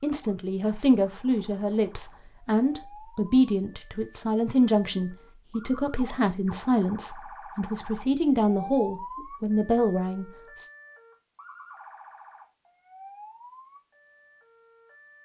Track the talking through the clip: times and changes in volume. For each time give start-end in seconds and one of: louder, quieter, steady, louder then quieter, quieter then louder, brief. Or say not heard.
0.0-10.7 steady.